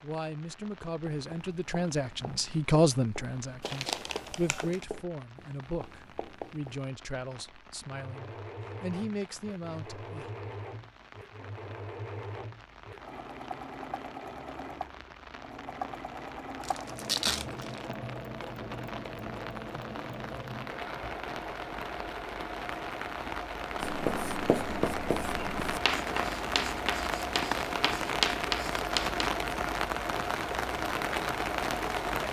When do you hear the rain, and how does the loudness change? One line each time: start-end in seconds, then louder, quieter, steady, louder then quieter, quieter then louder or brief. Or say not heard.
0.0-32.2 louder.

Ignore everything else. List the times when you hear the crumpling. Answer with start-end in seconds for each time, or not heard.
3.6-4.8, 16.6-17.8.